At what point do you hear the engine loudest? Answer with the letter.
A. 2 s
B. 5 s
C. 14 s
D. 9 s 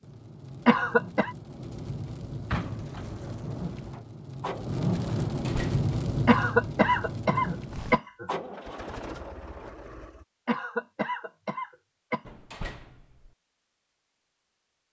D.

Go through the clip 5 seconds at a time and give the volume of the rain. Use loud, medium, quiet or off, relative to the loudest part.
medium, loud, off.